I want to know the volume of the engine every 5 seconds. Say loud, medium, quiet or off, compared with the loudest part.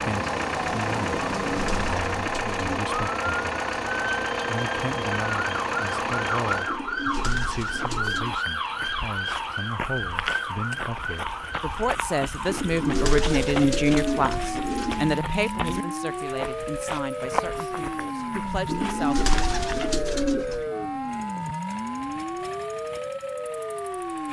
loud, medium, quiet, quiet, quiet.